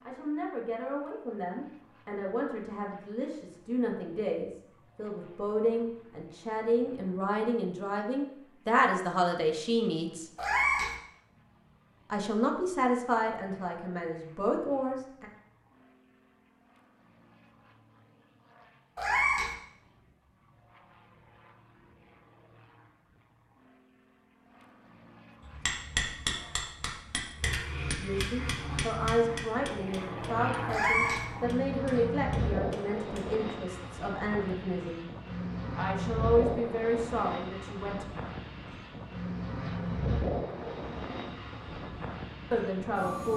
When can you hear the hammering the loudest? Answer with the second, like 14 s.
26 s.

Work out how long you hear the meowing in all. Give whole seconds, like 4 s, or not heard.
2 s.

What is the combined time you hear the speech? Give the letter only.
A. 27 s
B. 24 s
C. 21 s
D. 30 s
B.